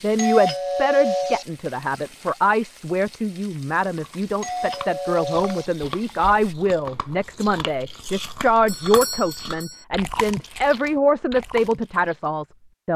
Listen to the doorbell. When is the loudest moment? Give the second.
1 s.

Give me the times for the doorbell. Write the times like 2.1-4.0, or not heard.
0.1-1.4, 4.4-5.7, 8.7-9.8.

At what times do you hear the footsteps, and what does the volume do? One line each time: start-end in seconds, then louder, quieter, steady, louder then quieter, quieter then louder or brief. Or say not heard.
not heard.